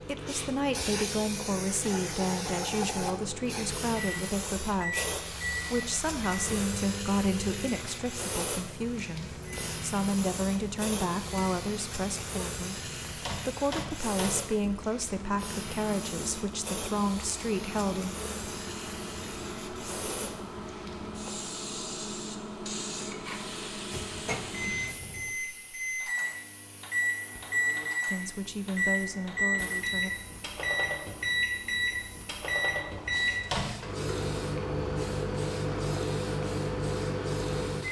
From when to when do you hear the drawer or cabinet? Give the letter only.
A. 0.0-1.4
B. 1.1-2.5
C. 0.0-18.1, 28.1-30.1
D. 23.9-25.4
D.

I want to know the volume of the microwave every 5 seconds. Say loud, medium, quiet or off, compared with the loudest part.
medium, medium, medium, medium, medium, loud, loud, loud.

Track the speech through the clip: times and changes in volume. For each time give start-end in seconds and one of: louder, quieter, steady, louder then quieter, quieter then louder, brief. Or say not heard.
0.0-18.1 steady
28.1-30.1 brief.